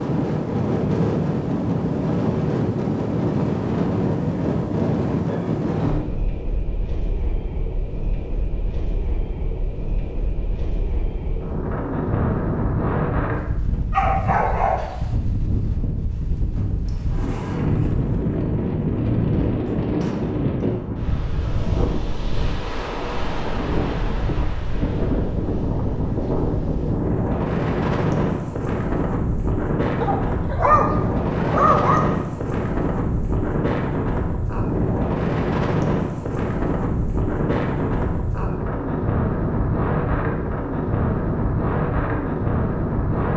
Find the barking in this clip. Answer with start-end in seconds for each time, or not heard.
13.9-14.9, 30.0-32.0.